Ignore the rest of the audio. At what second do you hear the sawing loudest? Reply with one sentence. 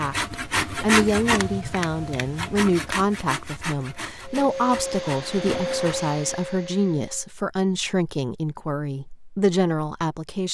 The volume of the sawing peaks at 1 second.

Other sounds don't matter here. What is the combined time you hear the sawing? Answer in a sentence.
You can hear the sawing for 6 seconds altogether.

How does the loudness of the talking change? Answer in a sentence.
The loudness of the talking stays about the same.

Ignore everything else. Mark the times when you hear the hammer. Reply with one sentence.
You can't hear the hammer here.